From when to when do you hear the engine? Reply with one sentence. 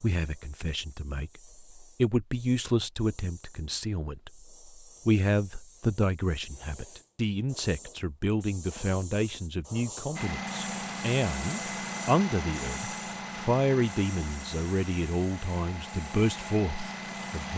You can hear the engine from 10.2 to 17.5 s.